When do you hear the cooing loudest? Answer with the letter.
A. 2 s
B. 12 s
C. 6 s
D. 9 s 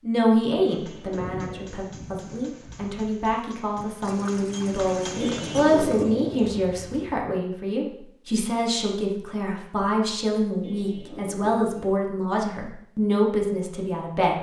C.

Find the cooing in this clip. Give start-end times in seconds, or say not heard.
0.7-1.8, 5.2-6.4, 10.6-11.8.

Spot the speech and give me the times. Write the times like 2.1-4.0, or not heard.
0.0-14.3.